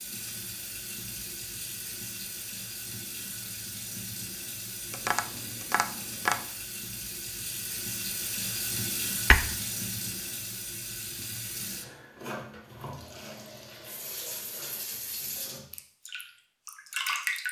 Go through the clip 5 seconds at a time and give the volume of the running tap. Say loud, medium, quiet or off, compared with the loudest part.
medium, loud, medium, loud.